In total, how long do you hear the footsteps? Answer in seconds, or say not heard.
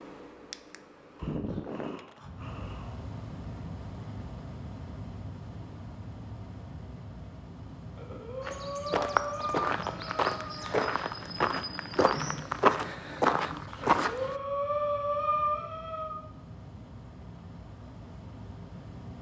6 s.